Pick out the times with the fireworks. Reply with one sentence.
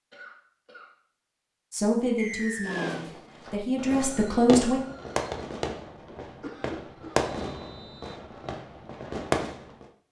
You can hear the fireworks from 2.6 to 9.8 s.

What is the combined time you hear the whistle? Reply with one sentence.
You can hear the whistle for 2 seconds altogether.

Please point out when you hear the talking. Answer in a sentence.
The talking can be heard from 1.7 to 4.8 s.